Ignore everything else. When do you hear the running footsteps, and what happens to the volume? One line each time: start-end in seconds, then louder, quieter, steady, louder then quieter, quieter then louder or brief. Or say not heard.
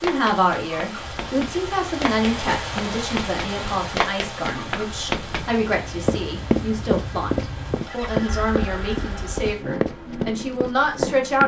0.0-5.5 louder then quieter
6.0-11.4 quieter.